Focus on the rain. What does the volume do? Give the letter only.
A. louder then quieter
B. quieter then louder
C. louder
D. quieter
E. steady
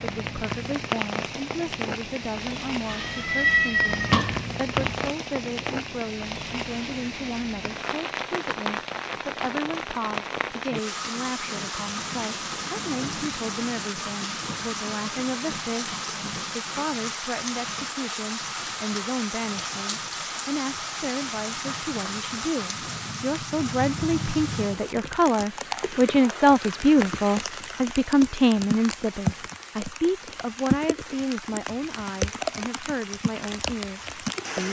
E.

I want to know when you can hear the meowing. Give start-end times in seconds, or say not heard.
2.9-5.1.